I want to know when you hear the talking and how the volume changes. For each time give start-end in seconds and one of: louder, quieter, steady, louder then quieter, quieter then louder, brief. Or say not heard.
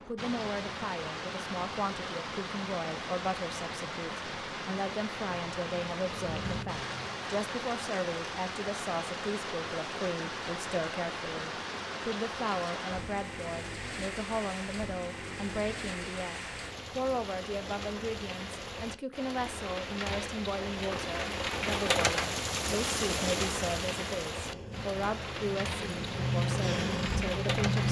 0.1-27.8 steady.